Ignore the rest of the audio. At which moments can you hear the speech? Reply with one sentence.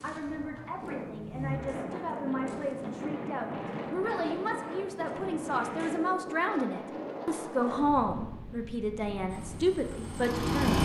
The speech can be heard from 0.0 to 10.8 s.